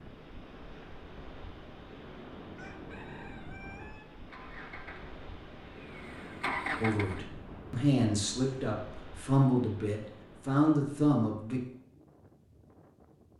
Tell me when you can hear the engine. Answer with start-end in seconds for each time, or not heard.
4.1-7.2.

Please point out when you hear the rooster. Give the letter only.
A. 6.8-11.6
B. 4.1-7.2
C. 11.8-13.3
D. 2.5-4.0
D.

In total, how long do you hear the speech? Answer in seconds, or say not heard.
5 s.